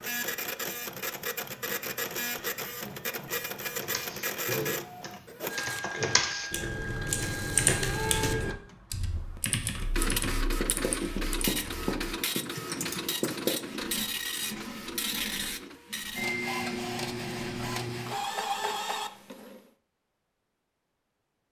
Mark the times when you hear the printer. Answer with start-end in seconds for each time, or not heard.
0.0-19.6.